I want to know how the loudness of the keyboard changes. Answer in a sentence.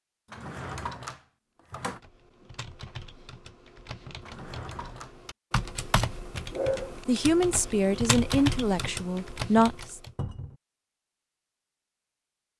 The volume of the keyboard goes up.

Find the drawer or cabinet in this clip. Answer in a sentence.
You can hear the drawer or cabinet from 0.3 to 2.0 s, from 4.2 to 5.2 s and from 10.2 to 10.6 s.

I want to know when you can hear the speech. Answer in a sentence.
You can hear the speech from 7.0 to 10.0 s.